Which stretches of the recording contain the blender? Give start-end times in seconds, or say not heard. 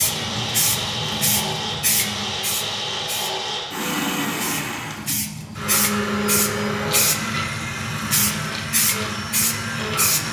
0.0-10.2.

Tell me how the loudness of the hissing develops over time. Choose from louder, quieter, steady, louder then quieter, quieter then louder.
quieter then louder.